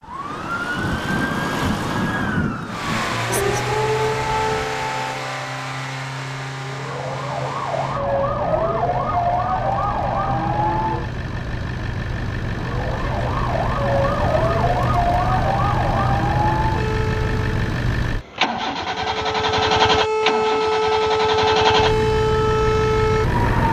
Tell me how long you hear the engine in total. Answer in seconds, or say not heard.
21 s.